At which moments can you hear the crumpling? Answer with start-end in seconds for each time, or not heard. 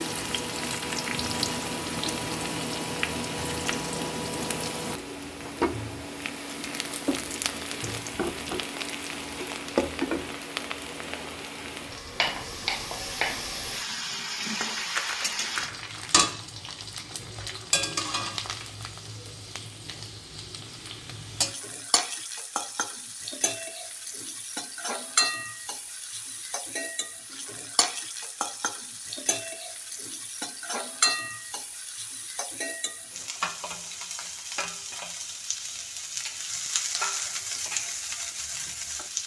14.8-16.3.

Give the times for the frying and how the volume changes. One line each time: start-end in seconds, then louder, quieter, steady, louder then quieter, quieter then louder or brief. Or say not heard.
0.0-39.2 steady.